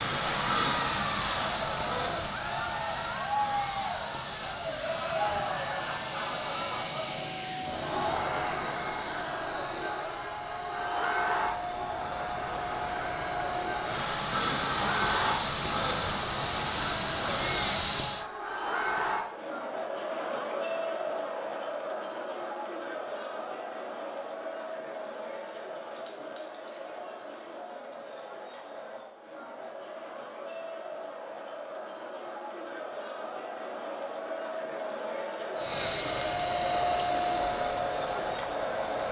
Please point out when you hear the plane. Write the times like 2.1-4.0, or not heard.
0.0-18.2, 35.6-39.0.